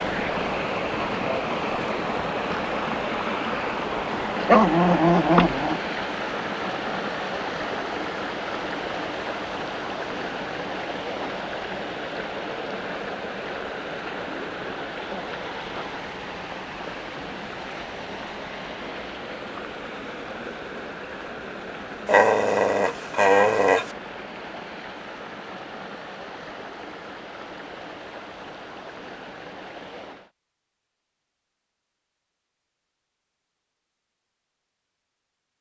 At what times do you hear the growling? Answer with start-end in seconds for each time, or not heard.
4.3-5.8, 22.1-23.9.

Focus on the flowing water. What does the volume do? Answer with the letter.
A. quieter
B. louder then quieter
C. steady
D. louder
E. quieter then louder
A.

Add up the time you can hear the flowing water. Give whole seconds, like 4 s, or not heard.
30 s.